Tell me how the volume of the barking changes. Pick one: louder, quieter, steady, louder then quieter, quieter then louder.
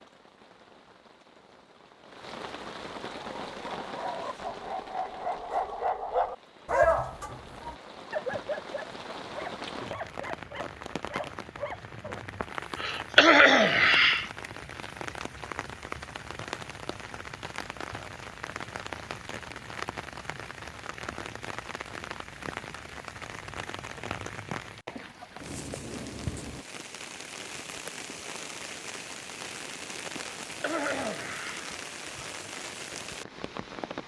louder then quieter.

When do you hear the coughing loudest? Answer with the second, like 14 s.
13 s.